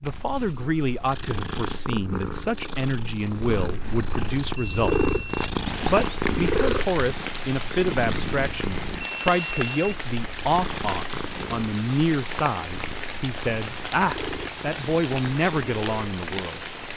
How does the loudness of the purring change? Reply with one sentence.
The volume of the purring goes up, then down.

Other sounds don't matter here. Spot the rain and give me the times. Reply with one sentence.
The rain can be heard from 5.7 to 16.9 s.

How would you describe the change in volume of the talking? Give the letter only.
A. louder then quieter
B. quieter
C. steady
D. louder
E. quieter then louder
C.